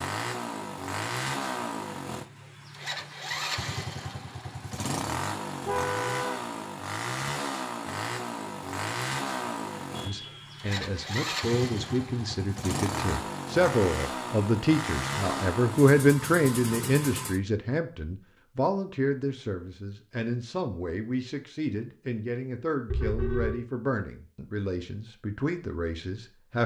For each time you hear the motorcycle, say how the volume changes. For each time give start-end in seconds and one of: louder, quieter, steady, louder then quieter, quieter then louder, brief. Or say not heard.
0.0-17.4 steady.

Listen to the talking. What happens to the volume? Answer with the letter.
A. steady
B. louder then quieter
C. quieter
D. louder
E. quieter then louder
B.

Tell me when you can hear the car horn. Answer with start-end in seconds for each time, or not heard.
5.7-6.4, 9.9-10.7, 22.9-23.6.